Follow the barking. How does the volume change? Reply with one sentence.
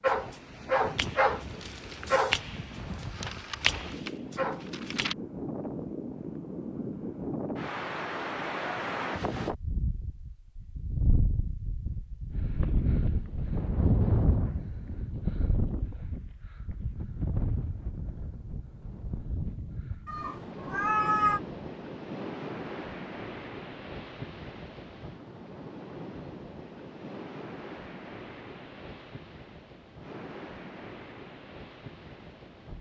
The volume of the barking goes down.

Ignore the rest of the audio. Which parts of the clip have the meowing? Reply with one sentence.
You can hear the meowing from 20.1 to 21.4 s.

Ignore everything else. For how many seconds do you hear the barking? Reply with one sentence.
You can hear the barking for 5 seconds altogether.